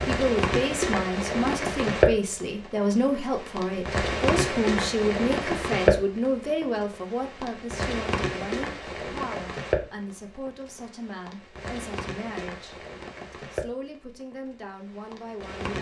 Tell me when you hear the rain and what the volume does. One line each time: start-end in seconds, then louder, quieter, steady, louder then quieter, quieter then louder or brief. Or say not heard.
0.0-15.7 quieter.